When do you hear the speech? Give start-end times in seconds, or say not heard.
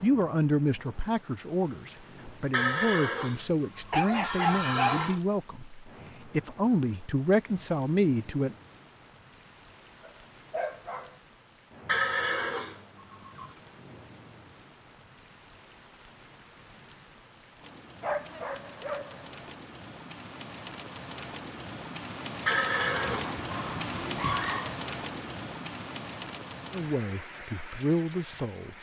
0.0-8.6, 26.7-28.7.